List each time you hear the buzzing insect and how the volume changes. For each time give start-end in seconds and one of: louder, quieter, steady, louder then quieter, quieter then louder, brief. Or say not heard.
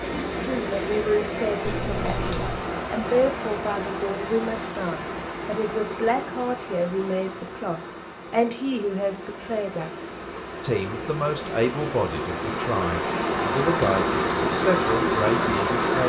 not heard.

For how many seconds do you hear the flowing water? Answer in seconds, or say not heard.
16 s.